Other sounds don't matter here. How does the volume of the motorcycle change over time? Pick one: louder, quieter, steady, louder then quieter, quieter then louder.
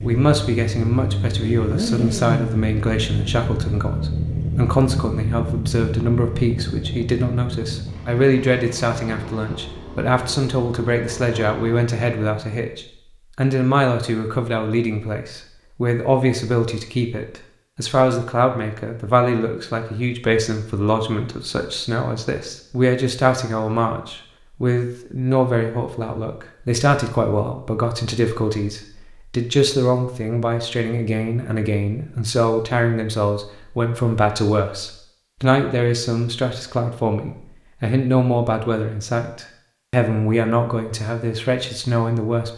quieter.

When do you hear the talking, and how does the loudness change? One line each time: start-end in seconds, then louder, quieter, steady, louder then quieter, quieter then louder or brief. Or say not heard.
0.0-42.5 steady.